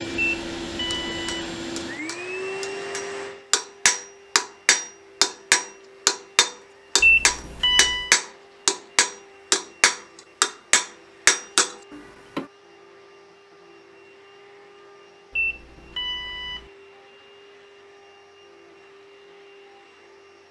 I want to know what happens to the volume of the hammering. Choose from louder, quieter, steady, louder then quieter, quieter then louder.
louder.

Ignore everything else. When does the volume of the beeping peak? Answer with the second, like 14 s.
7 s.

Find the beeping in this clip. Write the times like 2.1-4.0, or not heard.
0.1-1.5, 7.0-8.1, 15.3-16.6.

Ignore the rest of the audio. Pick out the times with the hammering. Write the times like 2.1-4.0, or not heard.
0.9-12.4.